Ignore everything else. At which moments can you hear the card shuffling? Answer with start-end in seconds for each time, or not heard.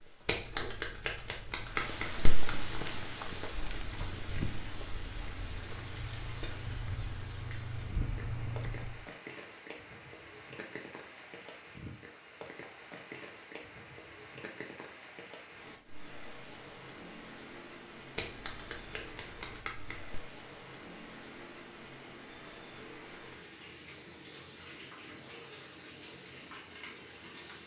0.2-2.9, 18.1-20.2.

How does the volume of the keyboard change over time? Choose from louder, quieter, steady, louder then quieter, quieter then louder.
louder.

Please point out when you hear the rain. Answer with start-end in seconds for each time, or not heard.
0.0-27.6.